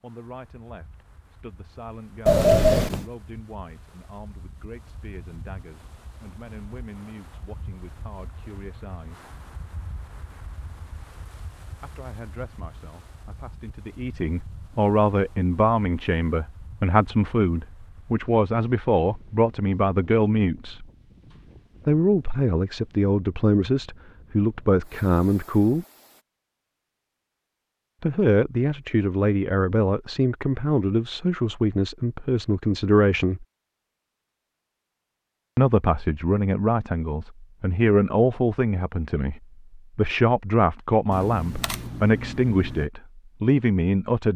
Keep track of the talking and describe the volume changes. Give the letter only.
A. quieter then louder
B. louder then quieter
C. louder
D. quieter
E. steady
C.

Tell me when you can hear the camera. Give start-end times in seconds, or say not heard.
2.2-3.0, 41.1-42.9.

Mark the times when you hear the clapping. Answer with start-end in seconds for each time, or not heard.
not heard.